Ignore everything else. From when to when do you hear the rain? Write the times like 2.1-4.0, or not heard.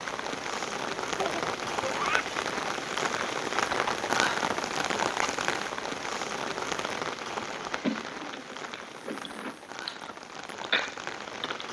0.0-11.6.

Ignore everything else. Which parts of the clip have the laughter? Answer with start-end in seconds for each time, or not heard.
1.1-2.3.